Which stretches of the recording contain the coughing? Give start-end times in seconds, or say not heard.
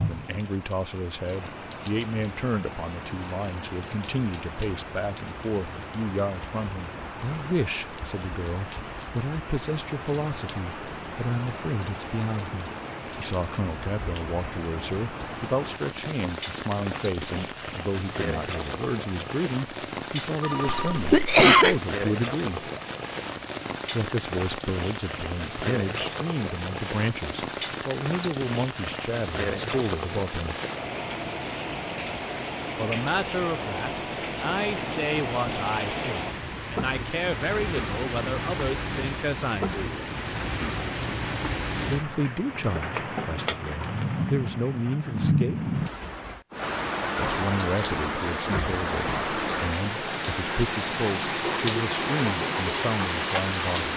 20.6-21.8.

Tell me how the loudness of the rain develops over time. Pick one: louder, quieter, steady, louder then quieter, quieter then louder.
louder.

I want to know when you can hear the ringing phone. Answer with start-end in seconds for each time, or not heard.
20.4-21.1.